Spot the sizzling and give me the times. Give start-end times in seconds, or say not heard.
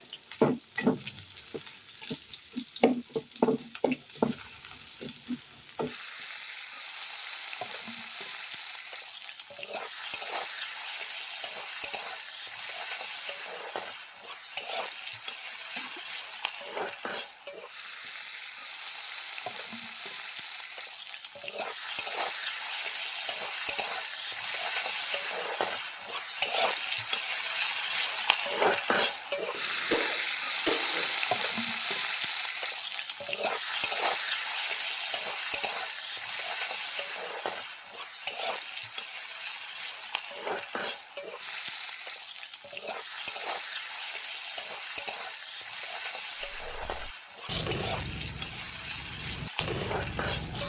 0.0-50.6.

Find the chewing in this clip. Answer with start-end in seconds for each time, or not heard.
46.4-50.6.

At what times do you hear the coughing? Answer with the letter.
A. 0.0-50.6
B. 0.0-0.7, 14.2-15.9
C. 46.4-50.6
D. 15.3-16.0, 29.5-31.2
D.